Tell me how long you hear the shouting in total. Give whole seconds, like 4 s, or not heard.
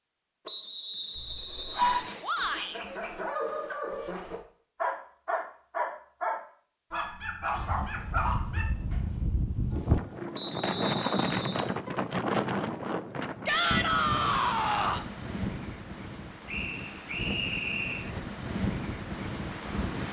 2 s.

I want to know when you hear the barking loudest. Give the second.
2 s.